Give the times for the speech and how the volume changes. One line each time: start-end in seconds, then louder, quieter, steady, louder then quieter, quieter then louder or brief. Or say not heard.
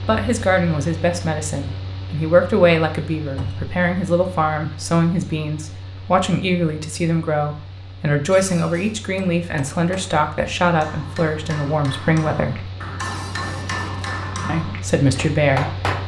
0.0-12.7 steady
14.4-15.8 brief.